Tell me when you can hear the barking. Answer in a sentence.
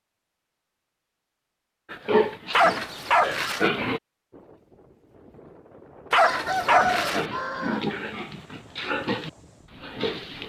You can hear the barking from 2.5 to 3.7 s and from 6.1 to 7.2 s.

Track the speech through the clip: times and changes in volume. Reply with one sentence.
You can't hear the speech here.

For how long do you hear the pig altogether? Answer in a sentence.
The pig can be heard for 6 seconds in total.